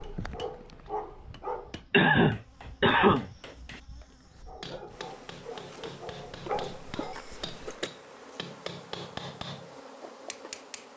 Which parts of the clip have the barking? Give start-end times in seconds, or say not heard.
0.0-1.8, 4.4-7.2.